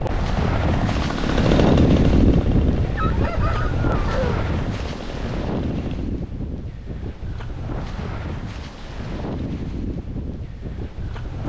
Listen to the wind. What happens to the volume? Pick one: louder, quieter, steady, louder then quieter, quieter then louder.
quieter.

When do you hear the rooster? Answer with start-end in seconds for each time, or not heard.
2.8-4.5.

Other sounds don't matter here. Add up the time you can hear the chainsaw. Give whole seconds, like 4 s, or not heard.
6 s.